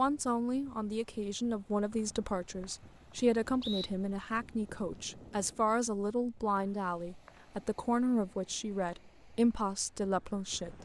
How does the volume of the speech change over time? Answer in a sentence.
The volume of the speech stays about the same.